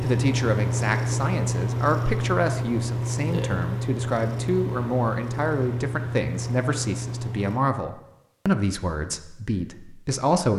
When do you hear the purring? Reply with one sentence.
You can hear the purring from 0.0 to 7.7 s.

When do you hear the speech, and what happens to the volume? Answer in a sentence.
The speech can be heard from 0.0 to 10.5 s, at a steady volume.